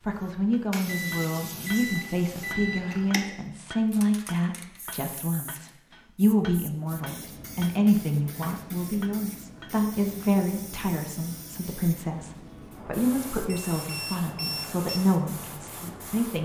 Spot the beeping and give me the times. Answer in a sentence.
The beeping can be heard from 0.8 to 3.1 s and from 13.4 to 15.0 s.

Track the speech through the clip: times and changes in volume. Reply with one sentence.
The speech can be heard from 0.0 to 16.4 s, at a steady volume.